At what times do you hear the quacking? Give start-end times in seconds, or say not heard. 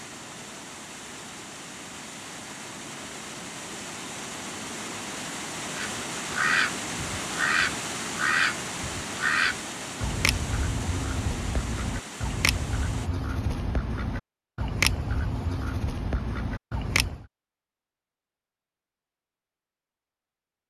5.8-17.2.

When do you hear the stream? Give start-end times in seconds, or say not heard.
0.0-13.1.